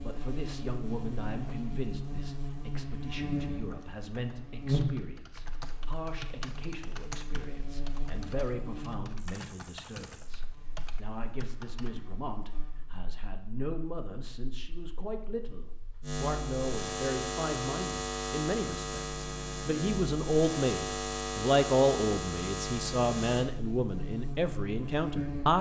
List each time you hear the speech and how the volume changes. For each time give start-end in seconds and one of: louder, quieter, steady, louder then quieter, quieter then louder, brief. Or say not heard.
0.0-25.5 louder.